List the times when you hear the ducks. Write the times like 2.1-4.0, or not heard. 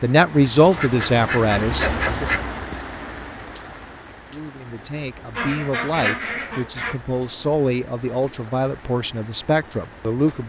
0.8-2.5, 5.3-7.0.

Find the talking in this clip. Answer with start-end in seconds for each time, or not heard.
0.0-2.2, 4.3-10.4.